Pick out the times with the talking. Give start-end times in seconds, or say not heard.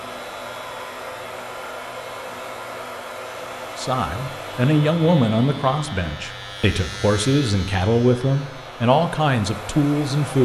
3.8-10.3.